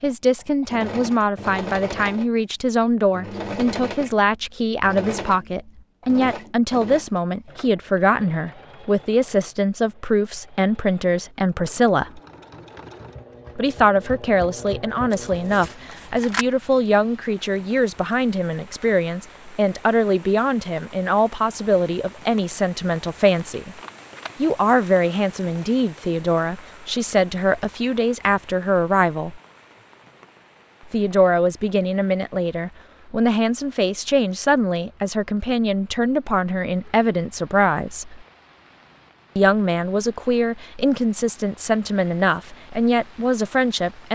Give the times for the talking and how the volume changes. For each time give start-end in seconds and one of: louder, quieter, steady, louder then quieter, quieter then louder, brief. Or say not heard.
0.0-12.2 steady
13.6-23.8 steady
24.4-29.4 steady
30.9-38.2 steady
39.4-44.0 steady.